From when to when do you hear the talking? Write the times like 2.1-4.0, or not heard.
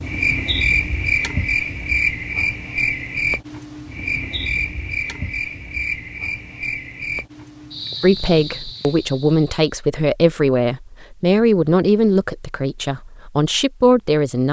8.0-14.4.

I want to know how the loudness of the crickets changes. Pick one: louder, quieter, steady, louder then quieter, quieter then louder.
quieter.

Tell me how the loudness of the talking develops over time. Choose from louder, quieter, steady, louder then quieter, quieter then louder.
steady.